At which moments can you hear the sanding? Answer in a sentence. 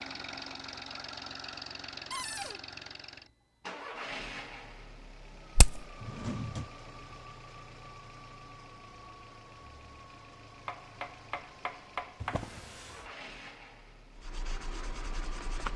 The sanding can be heard from 14.2 to 15.7 s.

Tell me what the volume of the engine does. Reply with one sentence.
The volume of the engine goes down.